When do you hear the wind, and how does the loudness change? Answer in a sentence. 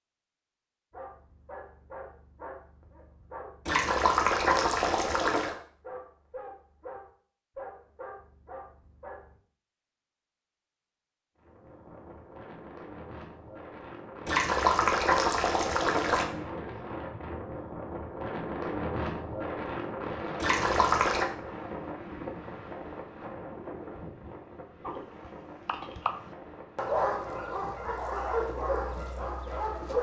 The wind can be heard from 11.3 to 29.9 s, getting louder then quieter.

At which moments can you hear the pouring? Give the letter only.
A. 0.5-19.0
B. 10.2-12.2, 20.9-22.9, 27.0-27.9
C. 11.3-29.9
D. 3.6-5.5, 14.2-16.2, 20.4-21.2
D.